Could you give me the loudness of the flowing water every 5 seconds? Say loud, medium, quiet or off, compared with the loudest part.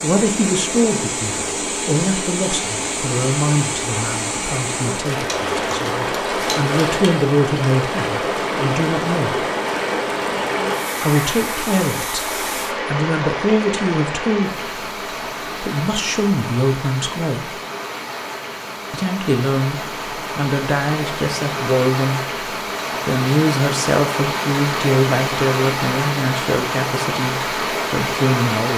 loud, loud, loud, medium, loud, loud.